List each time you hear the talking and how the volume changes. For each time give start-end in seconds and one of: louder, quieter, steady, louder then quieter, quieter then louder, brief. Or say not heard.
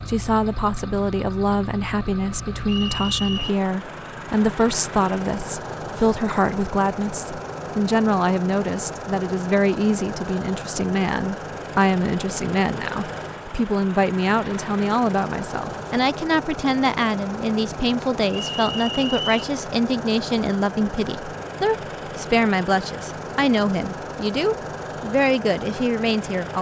0.1-26.5 steady.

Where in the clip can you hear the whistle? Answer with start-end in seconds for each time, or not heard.
2.6-3.5, 18.5-19.4.